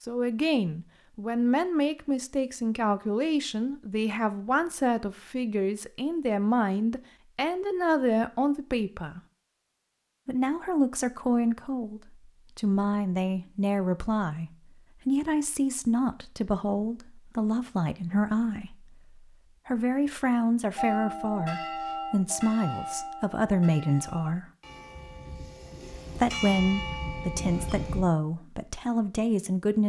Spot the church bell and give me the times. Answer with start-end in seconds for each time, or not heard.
20.8-28.1.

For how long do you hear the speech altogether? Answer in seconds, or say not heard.
27 s.